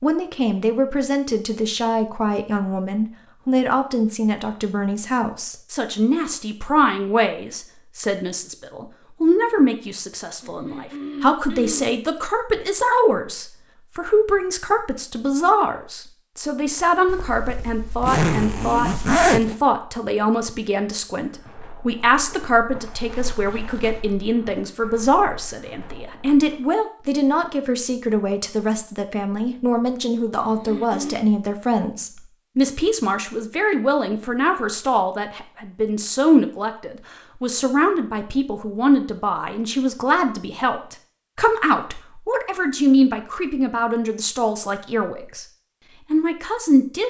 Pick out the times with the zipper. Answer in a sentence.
The zipper can be heard from 17.1 to 19.6 s.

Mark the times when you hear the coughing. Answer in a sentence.
The coughing can be heard from 10.4 to 12.0 s and from 30.4 to 31.2 s.